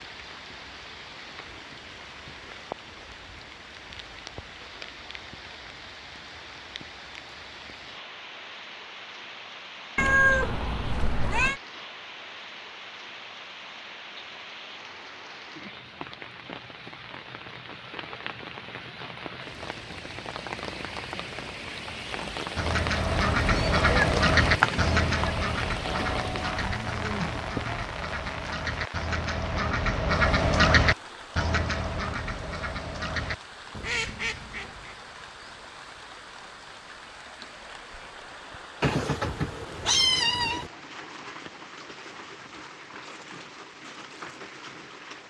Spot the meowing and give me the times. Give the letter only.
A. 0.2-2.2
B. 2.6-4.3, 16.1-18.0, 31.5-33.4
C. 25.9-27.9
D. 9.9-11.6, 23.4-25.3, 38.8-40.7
D.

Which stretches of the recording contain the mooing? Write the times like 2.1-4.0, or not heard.
25.9-27.9.